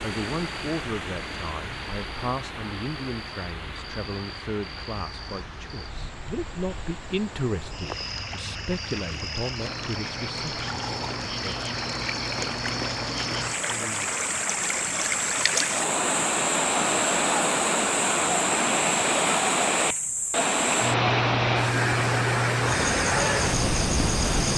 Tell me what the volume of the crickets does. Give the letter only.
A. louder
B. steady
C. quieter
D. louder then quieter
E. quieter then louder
A.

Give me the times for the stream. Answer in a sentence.
The stream can be heard from 0.0 to 24.5 s.